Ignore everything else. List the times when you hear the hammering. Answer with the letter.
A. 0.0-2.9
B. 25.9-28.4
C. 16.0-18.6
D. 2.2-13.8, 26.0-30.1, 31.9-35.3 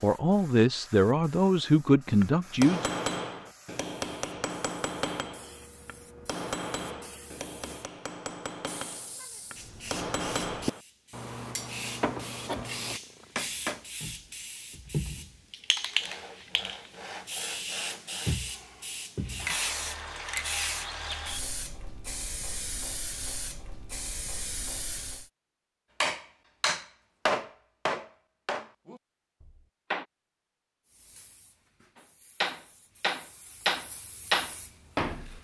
D.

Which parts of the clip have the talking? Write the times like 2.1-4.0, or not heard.
0.0-2.9.